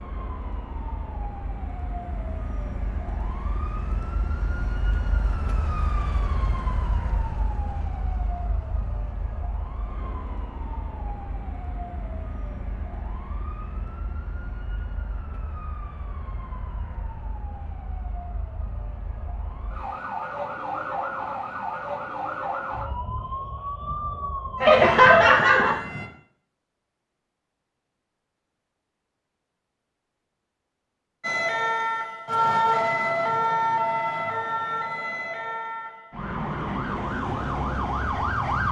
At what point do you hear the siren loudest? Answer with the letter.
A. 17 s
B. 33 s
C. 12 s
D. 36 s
B.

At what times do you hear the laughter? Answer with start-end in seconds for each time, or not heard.
24.6-25.8.